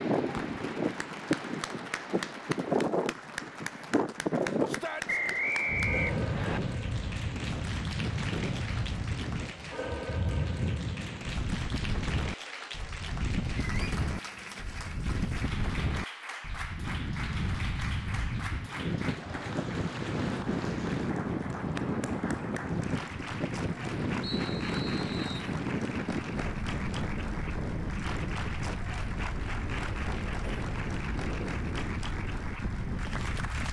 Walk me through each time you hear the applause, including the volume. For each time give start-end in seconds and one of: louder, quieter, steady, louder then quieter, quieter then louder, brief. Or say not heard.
0.1-33.6 steady.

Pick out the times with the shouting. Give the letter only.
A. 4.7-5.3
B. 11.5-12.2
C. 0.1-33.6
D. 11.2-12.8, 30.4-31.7
A.